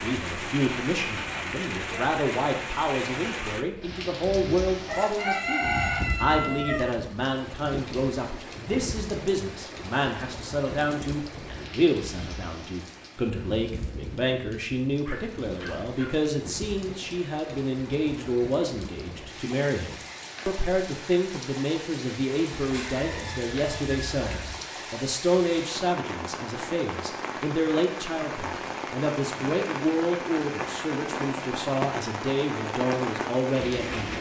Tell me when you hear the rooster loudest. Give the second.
6 s.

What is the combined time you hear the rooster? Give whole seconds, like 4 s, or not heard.
4 s.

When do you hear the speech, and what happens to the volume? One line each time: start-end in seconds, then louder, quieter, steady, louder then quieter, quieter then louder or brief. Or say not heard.
0.0-34.1 steady.